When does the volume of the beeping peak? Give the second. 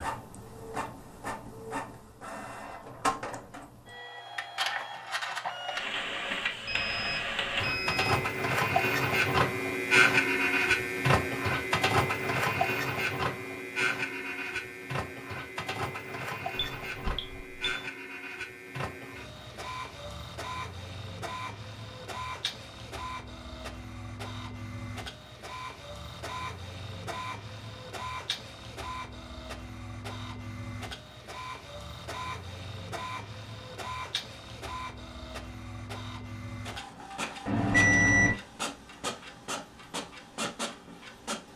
38 s.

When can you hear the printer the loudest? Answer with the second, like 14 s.
10 s.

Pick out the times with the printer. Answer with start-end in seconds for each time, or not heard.
0.0-41.5.